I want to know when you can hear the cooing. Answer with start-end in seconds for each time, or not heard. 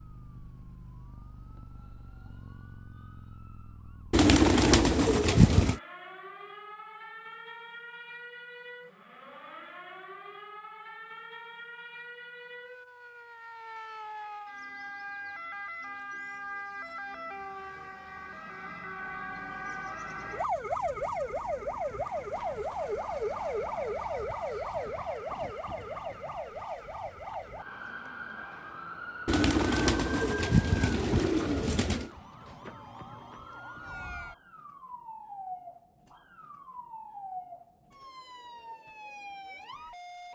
4.1-5.8, 29.2-32.1.